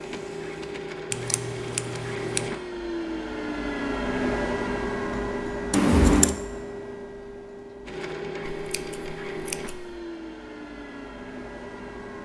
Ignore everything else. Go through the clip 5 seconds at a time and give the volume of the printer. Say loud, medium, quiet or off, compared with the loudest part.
loud, loud, medium.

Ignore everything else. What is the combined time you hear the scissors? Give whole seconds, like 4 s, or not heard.
3 s.